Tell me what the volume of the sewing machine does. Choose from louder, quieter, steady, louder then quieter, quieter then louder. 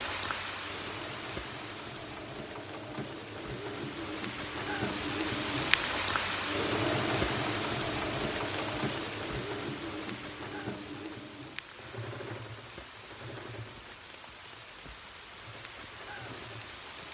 louder then quieter.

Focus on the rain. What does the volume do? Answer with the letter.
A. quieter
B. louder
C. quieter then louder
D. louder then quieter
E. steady
D.